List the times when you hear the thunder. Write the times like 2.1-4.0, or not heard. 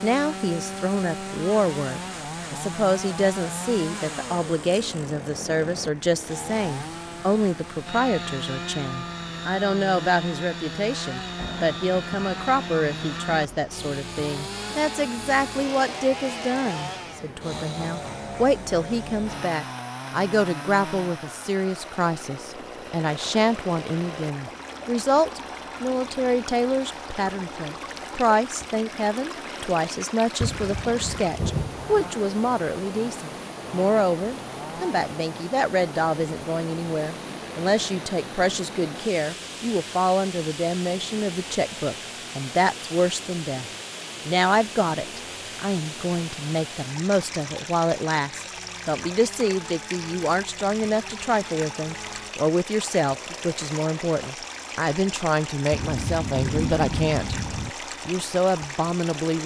11.3-13.8, 30.4-32.1, 55.7-57.7.